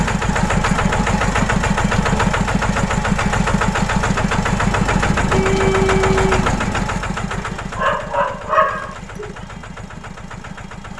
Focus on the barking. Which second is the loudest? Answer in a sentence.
The loudest moment of the barking is at 9 seconds.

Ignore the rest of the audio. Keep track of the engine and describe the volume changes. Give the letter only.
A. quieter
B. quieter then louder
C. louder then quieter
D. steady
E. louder
A.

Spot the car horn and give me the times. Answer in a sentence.
The car horn can be heard from 4.8 to 6.8 s.